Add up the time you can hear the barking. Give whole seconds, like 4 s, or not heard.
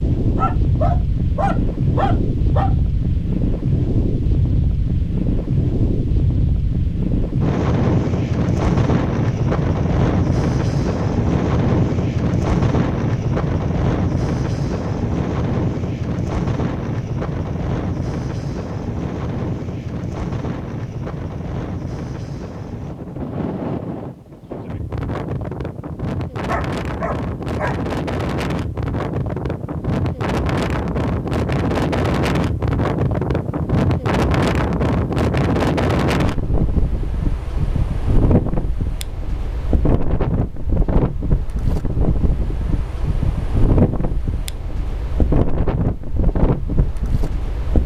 4 s.